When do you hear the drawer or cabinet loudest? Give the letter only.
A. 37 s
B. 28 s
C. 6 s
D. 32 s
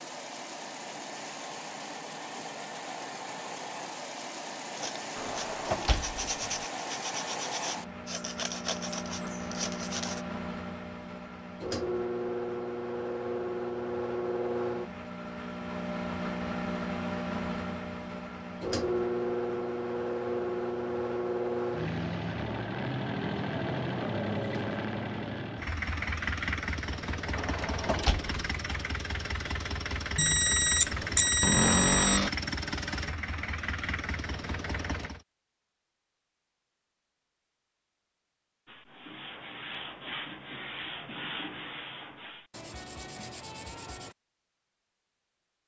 D.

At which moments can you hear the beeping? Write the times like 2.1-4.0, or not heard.
30.1-32.2.